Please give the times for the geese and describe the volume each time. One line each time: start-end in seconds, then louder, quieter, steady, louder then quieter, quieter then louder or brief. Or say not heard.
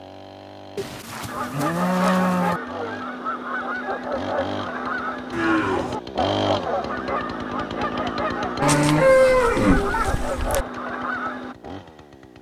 1.2-11.6 steady.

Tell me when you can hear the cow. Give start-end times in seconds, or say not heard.
0.8-2.6, 5.3-6.0, 8.6-10.7.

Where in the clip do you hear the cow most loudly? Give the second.
9 s.